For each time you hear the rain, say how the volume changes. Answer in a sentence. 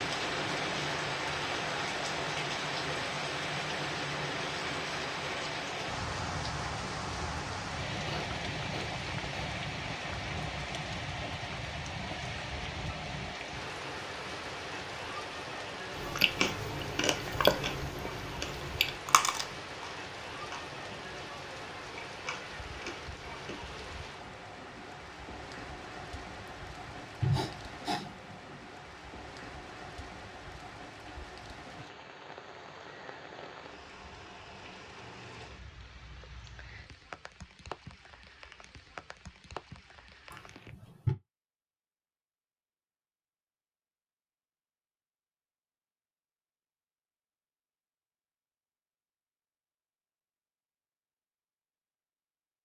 You can hear the rain from 0.0 to 40.8 s, getting quieter.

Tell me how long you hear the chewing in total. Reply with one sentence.
The chewing can be heard for 8 seconds in total.